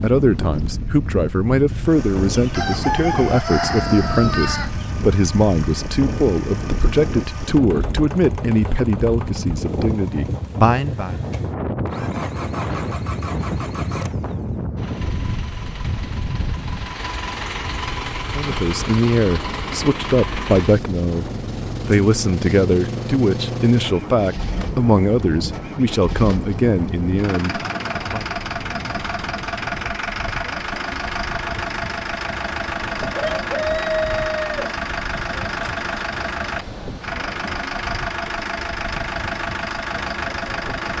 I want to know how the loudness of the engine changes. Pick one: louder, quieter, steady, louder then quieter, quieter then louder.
louder.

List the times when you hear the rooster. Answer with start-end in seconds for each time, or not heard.
2.3-4.8, 33.0-34.8.